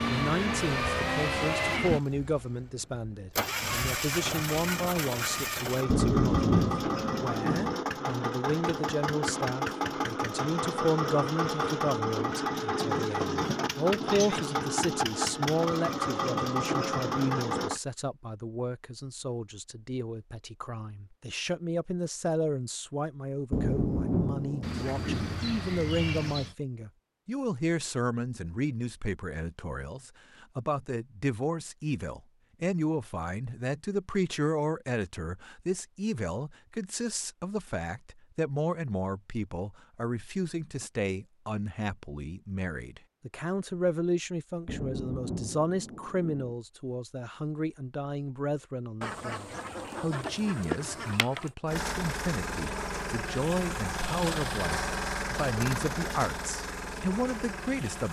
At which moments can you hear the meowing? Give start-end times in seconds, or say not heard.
not heard.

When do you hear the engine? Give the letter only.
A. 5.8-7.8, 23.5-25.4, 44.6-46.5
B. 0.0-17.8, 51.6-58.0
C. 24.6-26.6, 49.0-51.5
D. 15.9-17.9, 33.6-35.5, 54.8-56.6
B.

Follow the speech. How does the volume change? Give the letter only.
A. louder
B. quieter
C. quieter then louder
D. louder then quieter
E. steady
E.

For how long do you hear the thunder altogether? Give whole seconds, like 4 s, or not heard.
6 s.